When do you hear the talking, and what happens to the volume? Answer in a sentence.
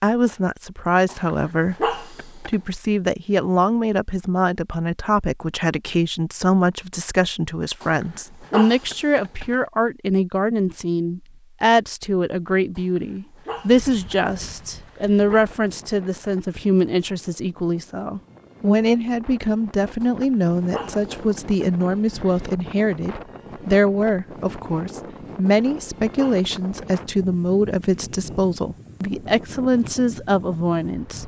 You can hear the talking from 0.0 to 31.2 s, at a steady volume.